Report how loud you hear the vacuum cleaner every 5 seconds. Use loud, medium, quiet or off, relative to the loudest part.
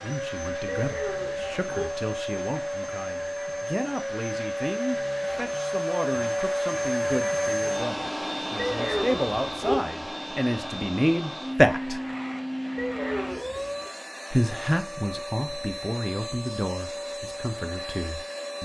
loud, loud, medium, medium.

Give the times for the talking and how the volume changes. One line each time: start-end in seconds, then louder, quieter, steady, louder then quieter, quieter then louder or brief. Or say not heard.
0.0-12.0 louder
14.3-18.6 quieter.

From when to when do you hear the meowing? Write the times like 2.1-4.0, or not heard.
0.7-1.9, 8.6-9.8, 12.8-13.9.